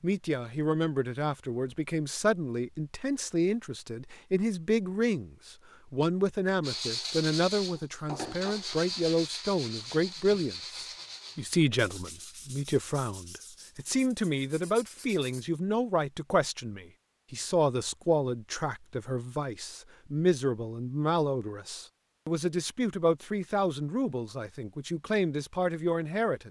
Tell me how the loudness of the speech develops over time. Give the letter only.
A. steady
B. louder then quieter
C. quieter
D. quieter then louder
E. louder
A.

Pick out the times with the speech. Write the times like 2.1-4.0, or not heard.
0.0-26.4.